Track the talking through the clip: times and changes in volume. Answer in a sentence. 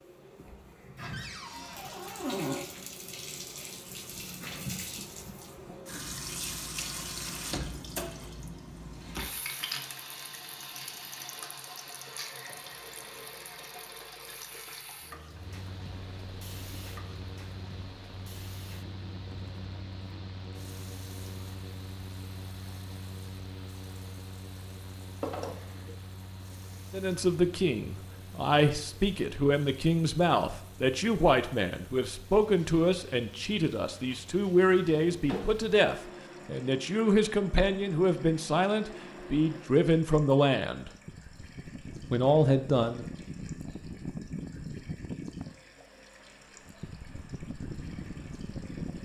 You can hear the talking from 26.9 to 40.9 s, at a steady volume; and briefly from 42.1 to 43.0 s.